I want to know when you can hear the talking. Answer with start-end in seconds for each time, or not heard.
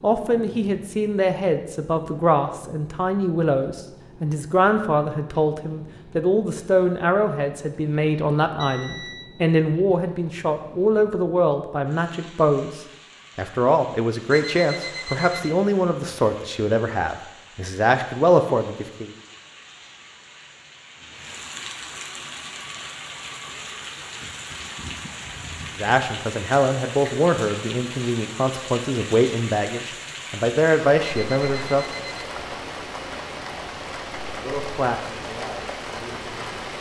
0.0-19.1, 25.8-31.9, 34.2-36.5.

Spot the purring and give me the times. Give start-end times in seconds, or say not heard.
not heard.